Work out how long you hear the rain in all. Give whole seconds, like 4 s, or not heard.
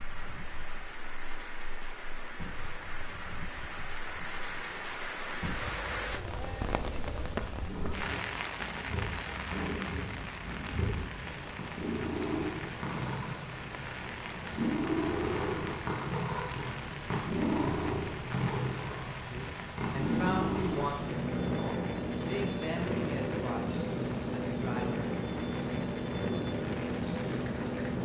28 s.